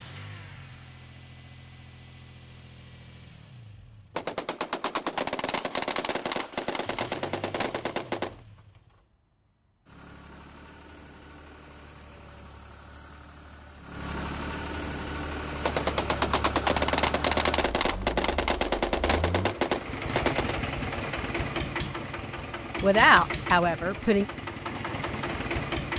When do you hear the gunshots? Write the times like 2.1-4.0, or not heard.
4.2-8.4, 15.6-20.6.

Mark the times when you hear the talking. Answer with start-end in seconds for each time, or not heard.
22.8-24.2.